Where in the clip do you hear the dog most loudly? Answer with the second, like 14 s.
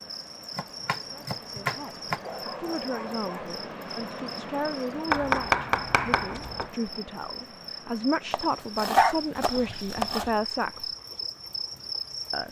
9 s.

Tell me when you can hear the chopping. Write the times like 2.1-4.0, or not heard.
0.6-2.2, 5.1-6.7, 8.3-10.4.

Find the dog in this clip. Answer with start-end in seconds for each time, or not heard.
2.2-3.6, 8.9-10.3.